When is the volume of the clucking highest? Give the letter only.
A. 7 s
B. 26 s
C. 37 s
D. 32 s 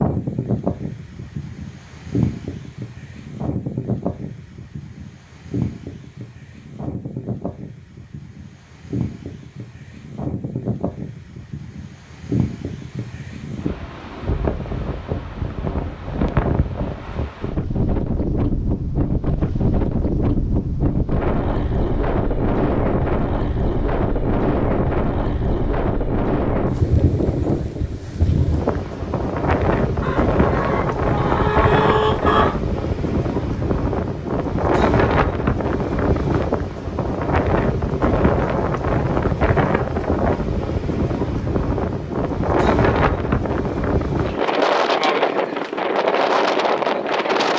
D.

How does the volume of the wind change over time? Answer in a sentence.
The loudness of the wind goes up.